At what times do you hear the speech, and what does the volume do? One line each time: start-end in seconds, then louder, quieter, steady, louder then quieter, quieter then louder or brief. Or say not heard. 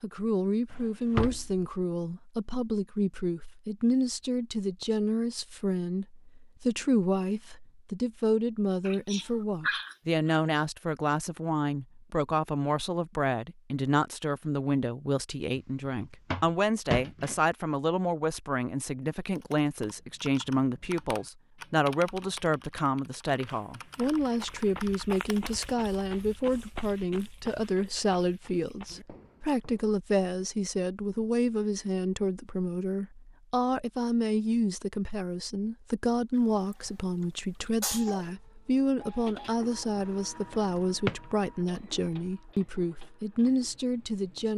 0.0-44.5 steady.